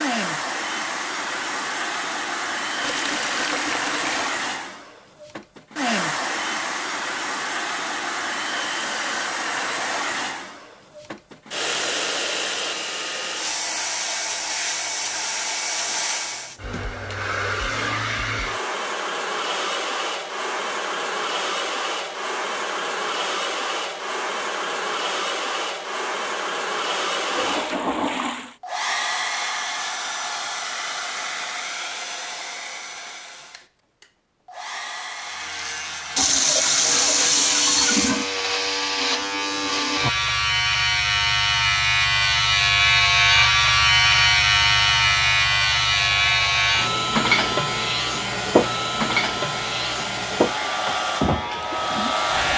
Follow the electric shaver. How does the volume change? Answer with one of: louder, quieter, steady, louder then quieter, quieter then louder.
louder then quieter.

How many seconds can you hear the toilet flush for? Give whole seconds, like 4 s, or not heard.
5 s.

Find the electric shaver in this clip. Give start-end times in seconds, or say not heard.
35.2-52.5.